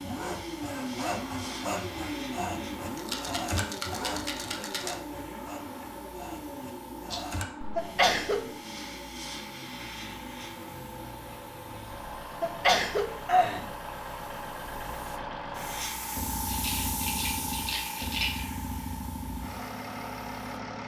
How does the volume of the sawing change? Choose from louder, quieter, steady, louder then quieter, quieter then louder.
quieter.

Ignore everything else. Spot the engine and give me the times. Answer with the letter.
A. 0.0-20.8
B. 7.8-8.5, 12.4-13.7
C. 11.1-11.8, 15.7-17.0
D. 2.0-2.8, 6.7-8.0
A.